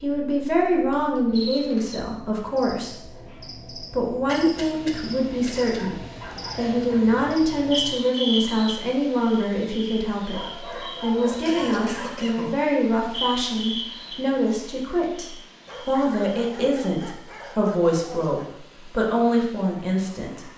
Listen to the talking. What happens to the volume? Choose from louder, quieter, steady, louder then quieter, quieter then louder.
steady.